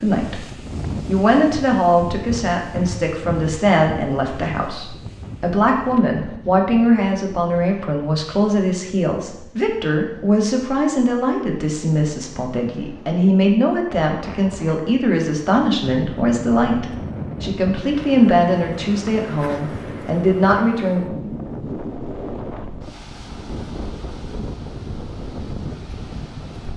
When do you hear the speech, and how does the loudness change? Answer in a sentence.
The speech can be heard from 0.0 to 21.0 s, at a steady volume.